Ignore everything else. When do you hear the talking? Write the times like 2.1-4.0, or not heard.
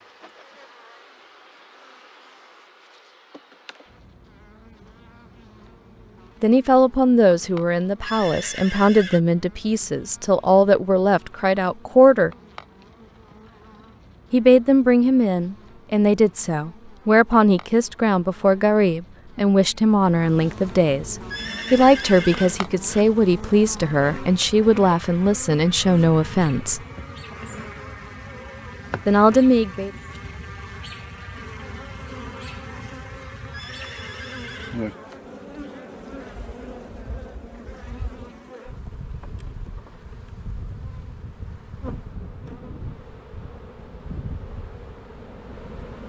6.4-12.3, 14.3-26.8, 29.1-29.9.